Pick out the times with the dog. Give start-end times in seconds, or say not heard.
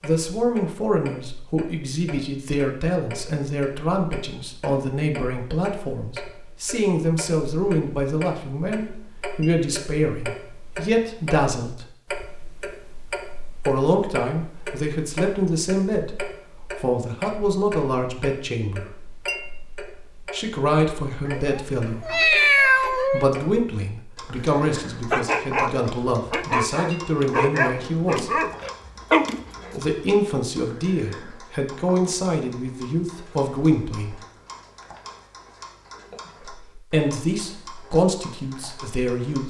25.1-29.9.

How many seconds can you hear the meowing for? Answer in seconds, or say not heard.
2 s.